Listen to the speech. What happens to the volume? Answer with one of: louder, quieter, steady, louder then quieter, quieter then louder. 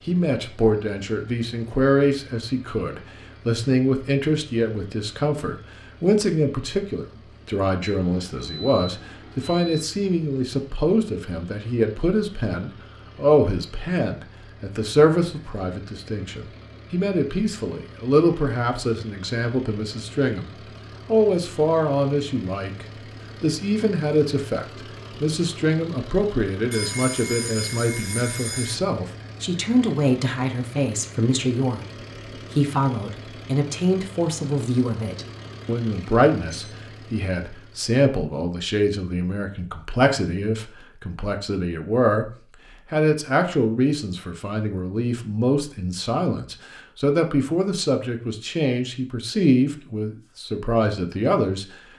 steady.